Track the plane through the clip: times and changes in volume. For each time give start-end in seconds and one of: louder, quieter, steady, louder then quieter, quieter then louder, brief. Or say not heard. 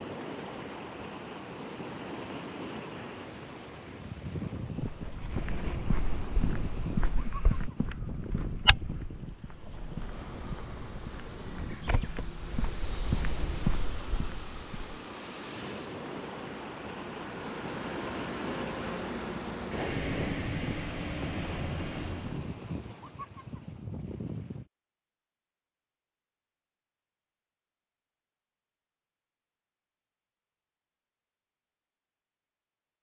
9.9-22.5 louder.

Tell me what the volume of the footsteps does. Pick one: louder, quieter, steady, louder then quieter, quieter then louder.
quieter then louder.